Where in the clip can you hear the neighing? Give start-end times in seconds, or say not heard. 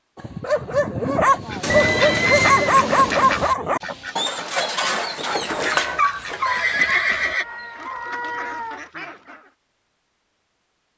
1.7-2.8, 6.4-7.5.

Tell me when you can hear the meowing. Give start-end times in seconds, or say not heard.
1.6-3.4, 7.4-8.8.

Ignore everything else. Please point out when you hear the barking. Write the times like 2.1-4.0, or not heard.
0.1-8.4.